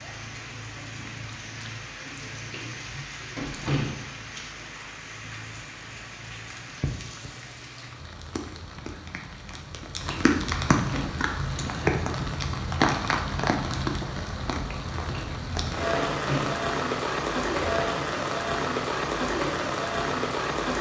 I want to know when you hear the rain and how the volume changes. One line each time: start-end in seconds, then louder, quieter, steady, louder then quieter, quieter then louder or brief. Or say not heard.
0.0-20.7 louder.